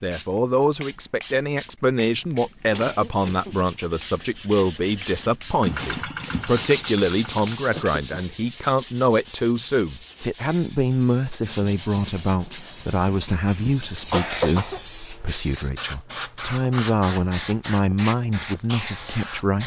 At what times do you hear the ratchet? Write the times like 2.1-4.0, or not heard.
not heard.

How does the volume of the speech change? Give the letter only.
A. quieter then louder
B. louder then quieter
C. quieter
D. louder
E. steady
E.